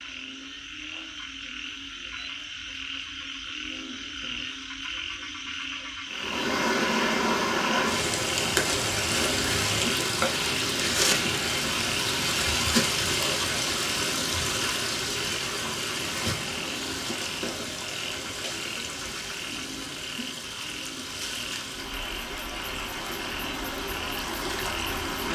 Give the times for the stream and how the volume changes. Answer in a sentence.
The stream can be heard from 6.1 to 25.3 s, getting quieter.